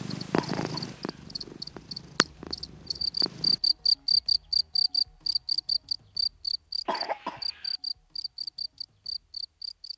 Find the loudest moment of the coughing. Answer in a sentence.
The loudest moment of the coughing is at 7 seconds.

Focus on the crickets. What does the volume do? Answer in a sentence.
The loudness of the crickets goes up, then down.